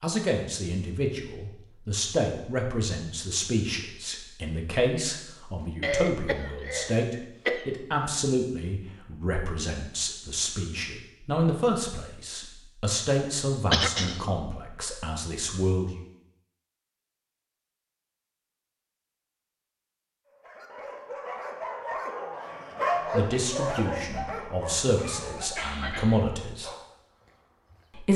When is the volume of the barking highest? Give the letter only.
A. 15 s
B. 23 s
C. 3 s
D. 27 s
B.